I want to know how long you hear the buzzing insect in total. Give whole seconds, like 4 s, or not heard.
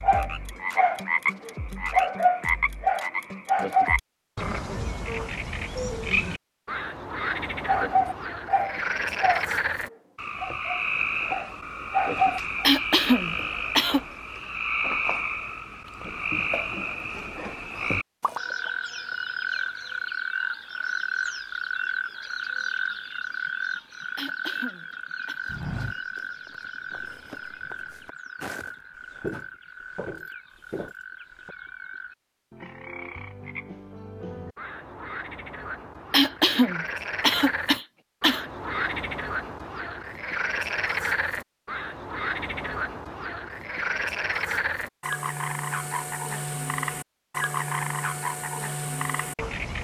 not heard.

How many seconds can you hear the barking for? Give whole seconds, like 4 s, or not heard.
9 s.